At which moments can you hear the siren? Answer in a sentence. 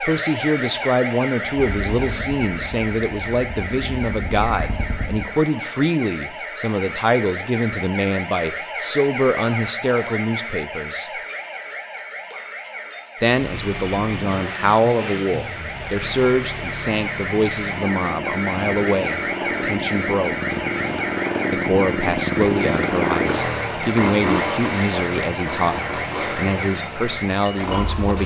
You can hear the siren from 0.0 to 28.1 s.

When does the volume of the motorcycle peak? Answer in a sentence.
The volume of the motorcycle peaks at 23 seconds.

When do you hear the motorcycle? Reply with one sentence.
You can hear the motorcycle from 1.6 to 5.2 s and from 13.2 to 28.2 s.